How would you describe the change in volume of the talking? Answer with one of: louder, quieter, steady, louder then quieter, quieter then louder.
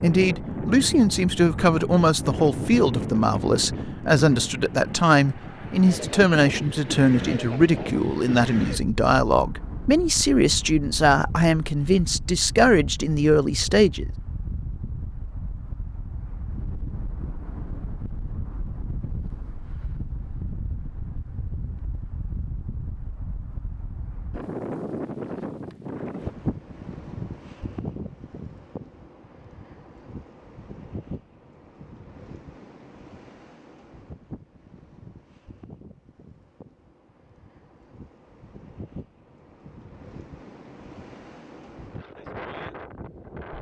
steady.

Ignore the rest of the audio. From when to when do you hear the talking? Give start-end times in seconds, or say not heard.
0.0-14.1.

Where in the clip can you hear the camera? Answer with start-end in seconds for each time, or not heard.
not heard.